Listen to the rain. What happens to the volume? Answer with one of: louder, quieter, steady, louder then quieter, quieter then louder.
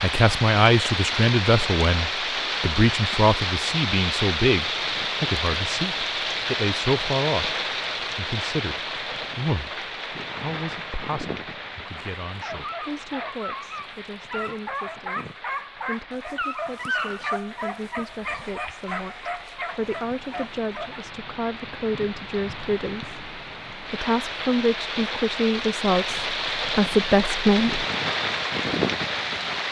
quieter then louder.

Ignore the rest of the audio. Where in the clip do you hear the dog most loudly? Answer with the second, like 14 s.
17 s.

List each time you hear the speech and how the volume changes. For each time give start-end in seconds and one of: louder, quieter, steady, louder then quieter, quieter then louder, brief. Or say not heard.
0.0-27.9 quieter then louder.